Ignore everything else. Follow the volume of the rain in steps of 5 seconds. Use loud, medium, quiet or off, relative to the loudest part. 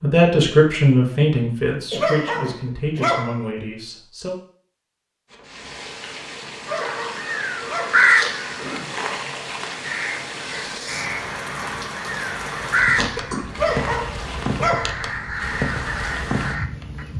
off, medium, loud, loud.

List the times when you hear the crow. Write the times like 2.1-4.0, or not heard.
6.7-17.1.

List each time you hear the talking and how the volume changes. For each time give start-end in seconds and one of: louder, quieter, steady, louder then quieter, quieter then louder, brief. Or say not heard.
0.0-4.3 quieter.